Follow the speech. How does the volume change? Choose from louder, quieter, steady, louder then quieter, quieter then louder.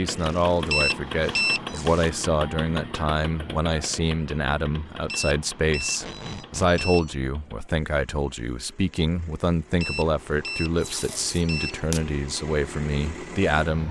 steady.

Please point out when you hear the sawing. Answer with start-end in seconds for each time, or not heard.
not heard.